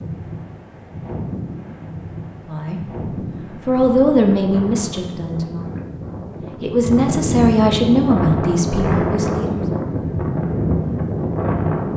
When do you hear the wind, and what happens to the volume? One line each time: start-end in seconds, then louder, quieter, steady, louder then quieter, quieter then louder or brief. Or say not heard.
0.0-11.9 louder.